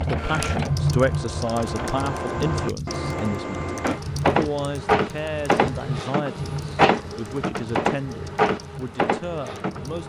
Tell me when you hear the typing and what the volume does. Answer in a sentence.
You can hear the typing from 0.0 to 10.0 s, getting quieter.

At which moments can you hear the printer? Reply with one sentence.
You can hear the printer from 0.0 to 10.0 s.